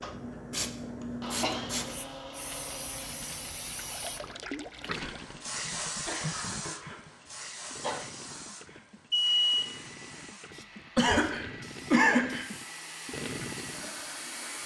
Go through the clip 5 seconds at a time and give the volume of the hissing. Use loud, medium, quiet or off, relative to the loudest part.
loud, loud, medium.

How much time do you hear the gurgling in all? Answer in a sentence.
You can hear the gurgling for 11 seconds altogether.